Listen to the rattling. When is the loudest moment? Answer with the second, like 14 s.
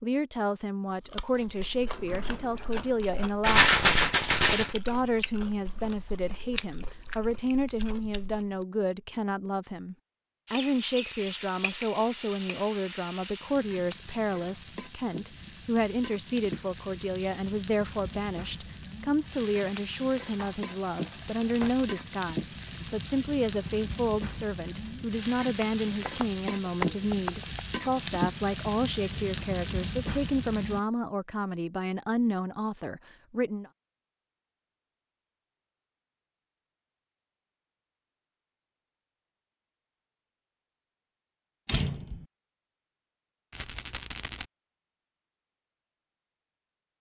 4 s.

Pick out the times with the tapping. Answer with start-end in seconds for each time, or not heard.
25.9-27.8.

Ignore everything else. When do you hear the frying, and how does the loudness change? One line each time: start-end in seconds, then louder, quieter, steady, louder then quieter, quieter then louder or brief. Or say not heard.
10.4-30.8 louder.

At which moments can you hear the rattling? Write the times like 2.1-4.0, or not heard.
3.4-4.8, 20.6-22.1, 43.5-44.5.